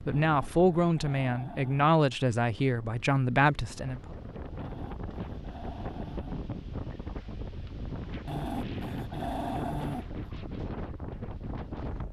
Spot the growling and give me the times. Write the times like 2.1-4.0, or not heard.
0.1-1.9, 4.6-6.3, 8.2-10.3.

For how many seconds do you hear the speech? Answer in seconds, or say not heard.
4 s.